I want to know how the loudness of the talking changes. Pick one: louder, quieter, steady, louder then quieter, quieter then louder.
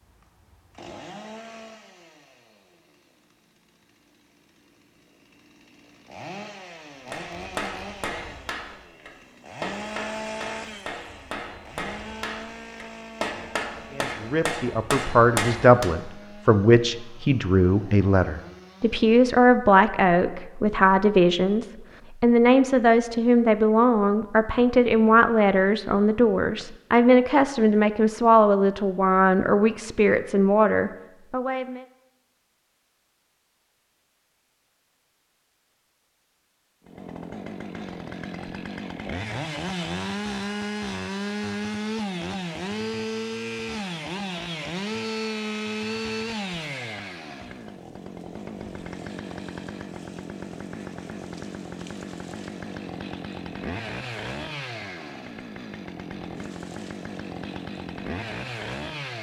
steady.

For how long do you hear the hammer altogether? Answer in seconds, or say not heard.
9 s.